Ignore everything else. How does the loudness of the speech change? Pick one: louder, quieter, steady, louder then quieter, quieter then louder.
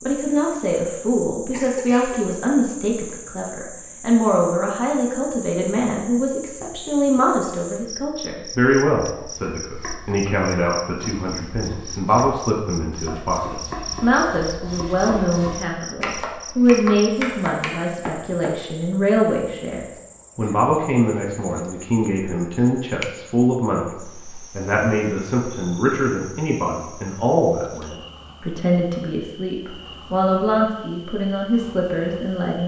steady.